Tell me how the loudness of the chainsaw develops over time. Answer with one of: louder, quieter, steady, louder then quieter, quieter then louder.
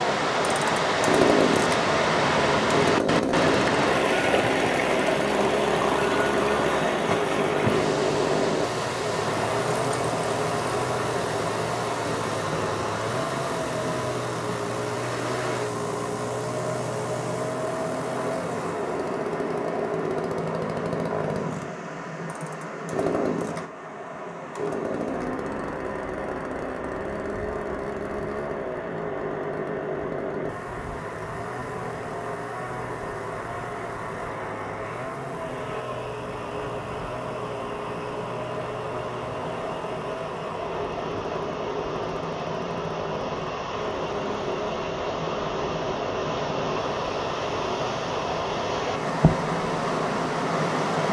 quieter.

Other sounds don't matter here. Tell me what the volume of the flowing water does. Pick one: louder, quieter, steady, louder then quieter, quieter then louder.
quieter then louder.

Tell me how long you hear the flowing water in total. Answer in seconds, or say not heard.
51 s.